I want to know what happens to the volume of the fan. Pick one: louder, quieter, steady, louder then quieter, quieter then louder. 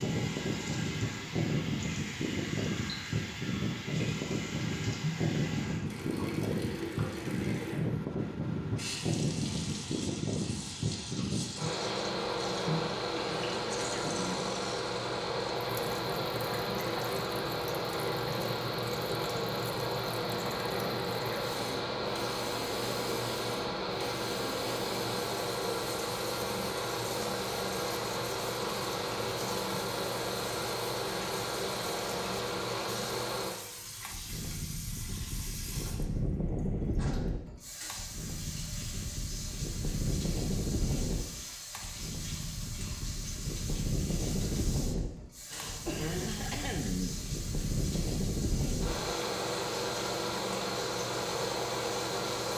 steady.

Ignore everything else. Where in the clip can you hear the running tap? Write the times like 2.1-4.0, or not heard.
0.0-52.5.